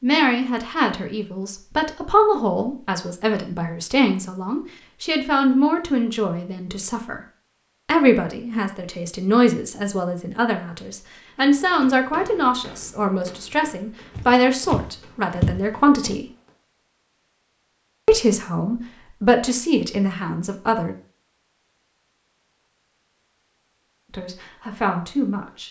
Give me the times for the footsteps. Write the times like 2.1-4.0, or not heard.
14.1-16.1.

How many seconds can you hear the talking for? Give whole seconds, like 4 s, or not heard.
20 s.